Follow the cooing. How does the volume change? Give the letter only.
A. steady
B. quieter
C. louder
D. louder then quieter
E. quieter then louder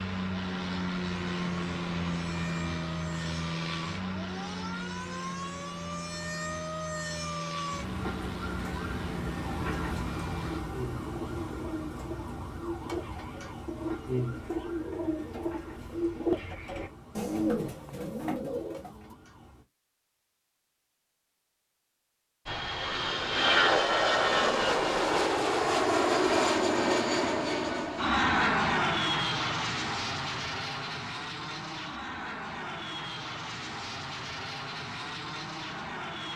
C.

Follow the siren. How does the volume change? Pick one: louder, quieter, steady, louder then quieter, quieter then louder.
louder then quieter.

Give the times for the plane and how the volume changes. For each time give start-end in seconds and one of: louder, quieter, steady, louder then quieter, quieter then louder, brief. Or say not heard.
0.0-10.6 quieter
22.4-36.3 quieter.